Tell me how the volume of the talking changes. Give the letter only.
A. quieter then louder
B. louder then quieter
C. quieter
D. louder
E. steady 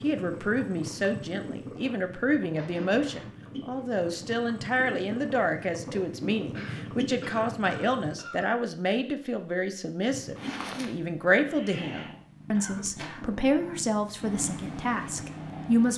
E.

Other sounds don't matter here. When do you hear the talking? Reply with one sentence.
The talking can be heard from 0.0 to 15.9 s.